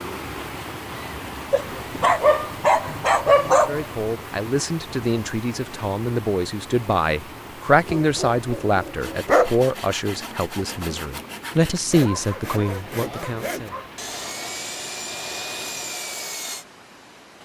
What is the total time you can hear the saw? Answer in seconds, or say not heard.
8 s.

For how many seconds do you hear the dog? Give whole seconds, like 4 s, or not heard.
6 s.